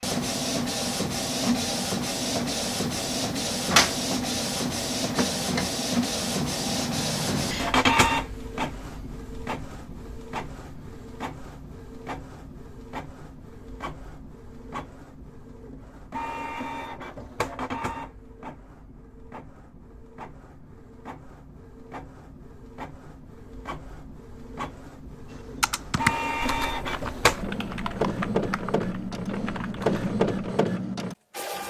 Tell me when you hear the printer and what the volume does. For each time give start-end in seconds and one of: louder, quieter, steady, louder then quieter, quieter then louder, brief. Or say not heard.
0.0-31.6 quieter then louder.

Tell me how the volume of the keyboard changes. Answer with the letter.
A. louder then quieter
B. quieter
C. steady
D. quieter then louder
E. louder
B.